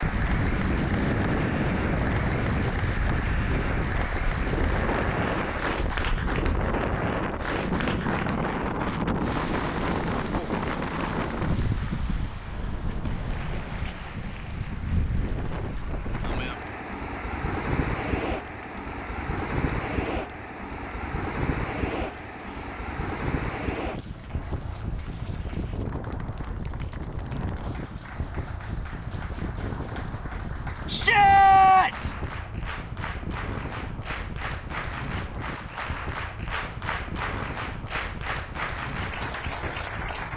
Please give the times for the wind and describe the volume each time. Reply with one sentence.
The wind can be heard from 0.0 to 40.3 s, getting quieter.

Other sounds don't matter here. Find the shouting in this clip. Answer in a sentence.
The shouting can be heard from 30.9 to 32.1 s.